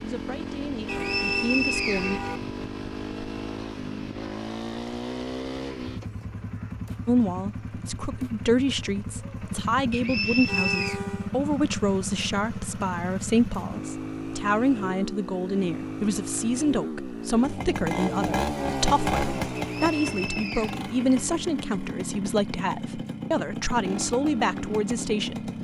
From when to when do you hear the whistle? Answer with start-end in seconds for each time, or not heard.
0.8-2.4, 9.9-11.0, 19.6-20.8.